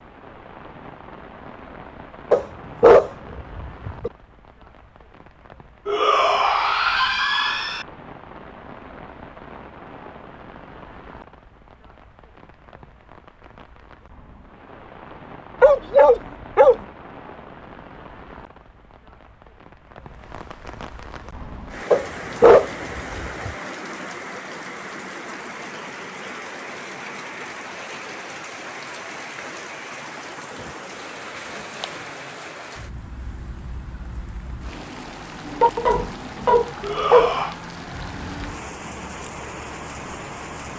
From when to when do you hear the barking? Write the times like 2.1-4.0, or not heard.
2.3-4.1, 15.6-16.8, 21.9-23.5, 35.6-37.4.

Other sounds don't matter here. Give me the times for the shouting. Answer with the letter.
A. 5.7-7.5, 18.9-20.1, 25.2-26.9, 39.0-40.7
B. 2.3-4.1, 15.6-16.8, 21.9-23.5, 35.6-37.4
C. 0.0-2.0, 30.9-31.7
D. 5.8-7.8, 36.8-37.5
D.